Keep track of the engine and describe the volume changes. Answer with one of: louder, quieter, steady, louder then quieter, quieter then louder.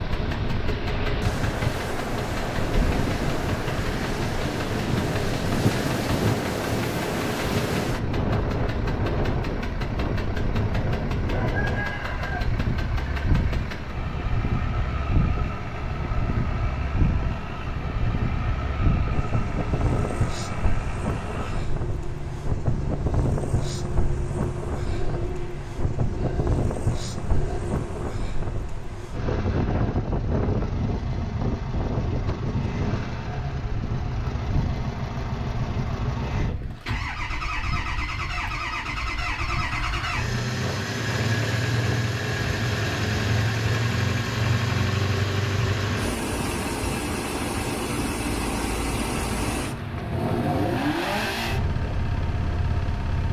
louder.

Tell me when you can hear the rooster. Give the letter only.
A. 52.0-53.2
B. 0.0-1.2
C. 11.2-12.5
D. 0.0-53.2
C.